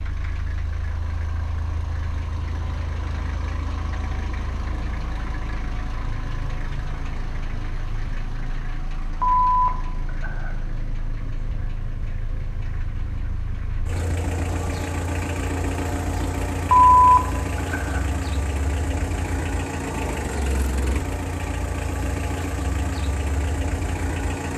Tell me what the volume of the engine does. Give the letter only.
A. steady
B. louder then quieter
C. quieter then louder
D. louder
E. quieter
D.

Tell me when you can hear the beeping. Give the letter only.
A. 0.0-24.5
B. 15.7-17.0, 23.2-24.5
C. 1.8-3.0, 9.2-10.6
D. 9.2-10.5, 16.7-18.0
D.